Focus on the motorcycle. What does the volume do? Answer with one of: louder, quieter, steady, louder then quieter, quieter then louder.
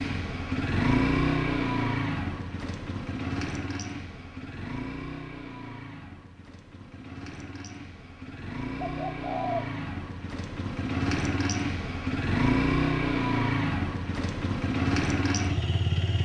quieter then louder.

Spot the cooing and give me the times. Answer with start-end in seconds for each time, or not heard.
8.8-9.7.